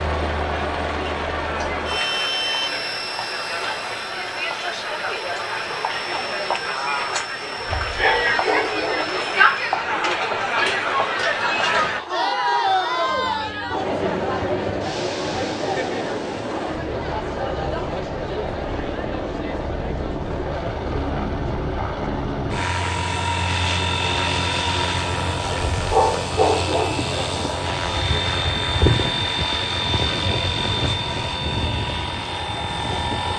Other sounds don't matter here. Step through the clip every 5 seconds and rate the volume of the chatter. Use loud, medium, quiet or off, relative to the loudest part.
medium, loud, loud, medium, quiet, quiet, quiet.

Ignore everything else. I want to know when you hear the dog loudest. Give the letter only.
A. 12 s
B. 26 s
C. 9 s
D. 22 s
B.